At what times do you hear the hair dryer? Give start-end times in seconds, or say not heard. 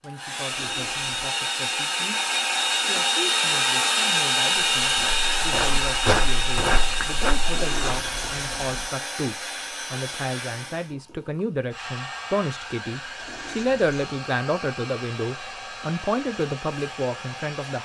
0.0-17.8.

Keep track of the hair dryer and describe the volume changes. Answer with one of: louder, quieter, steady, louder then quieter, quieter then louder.
quieter.